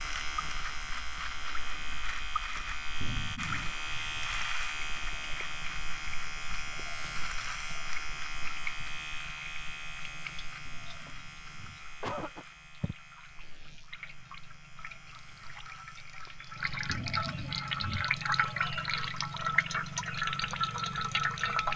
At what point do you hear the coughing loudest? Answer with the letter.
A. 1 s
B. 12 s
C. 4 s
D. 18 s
B.